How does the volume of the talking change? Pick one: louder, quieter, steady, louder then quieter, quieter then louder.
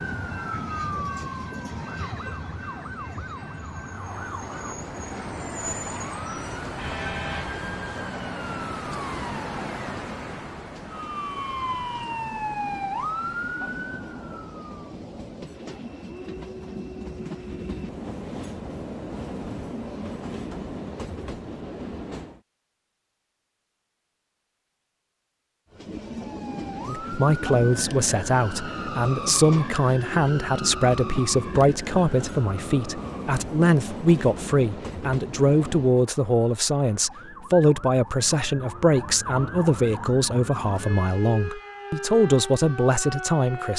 steady.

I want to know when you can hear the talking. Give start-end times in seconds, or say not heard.
26.9-43.7.